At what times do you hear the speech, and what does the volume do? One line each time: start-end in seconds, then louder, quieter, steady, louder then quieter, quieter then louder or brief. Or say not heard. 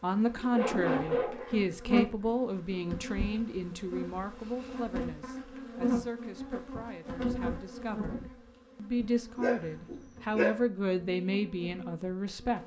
0.0-12.6 quieter then louder.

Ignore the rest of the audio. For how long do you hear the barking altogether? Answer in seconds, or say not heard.
4 s.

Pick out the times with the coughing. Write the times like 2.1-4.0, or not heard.
not heard.